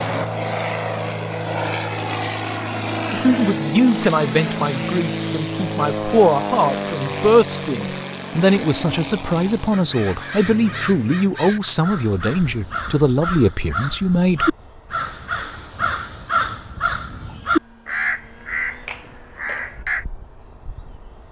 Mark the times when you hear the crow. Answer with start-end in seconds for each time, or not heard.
9.7-20.1.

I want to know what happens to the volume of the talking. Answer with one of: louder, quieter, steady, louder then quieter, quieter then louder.
steady.